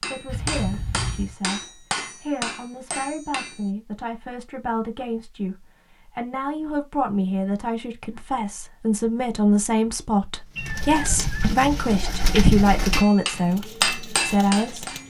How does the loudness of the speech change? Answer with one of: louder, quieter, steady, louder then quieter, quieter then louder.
louder.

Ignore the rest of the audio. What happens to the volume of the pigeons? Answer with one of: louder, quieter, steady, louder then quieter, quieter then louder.
louder then quieter.